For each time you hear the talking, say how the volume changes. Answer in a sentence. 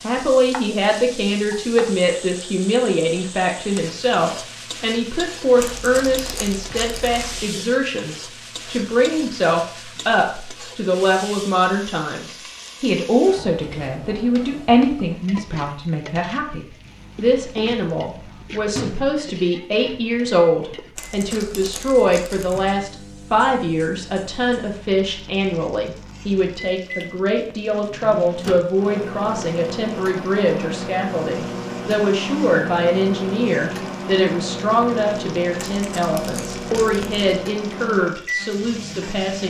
The talking can be heard from 0.0 to 39.4 s, at a steady volume.